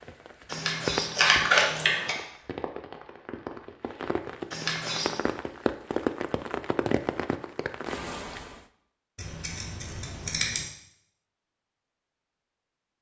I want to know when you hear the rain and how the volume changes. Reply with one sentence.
The rain can be heard from 0.0 to 8.7 s, getting quieter then louder.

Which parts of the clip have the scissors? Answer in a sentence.
The scissors can be heard from 0.5 to 2.1 s, from 4.5 to 5.2 s and from 9.2 to 10.7 s.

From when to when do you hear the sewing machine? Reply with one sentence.
The sewing machine can't be heard in this clip.